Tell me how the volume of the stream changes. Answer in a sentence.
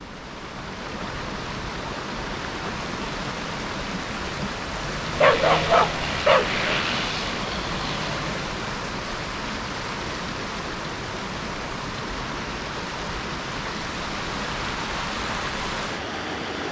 The volume of the stream stays about the same.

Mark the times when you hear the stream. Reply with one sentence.
You can hear the stream from 0.0 to 16.6 s.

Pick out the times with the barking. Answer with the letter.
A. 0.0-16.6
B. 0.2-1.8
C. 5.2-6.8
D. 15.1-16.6
C.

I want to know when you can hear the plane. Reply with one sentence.
The plane can be heard from 4.8 to 8.5 s.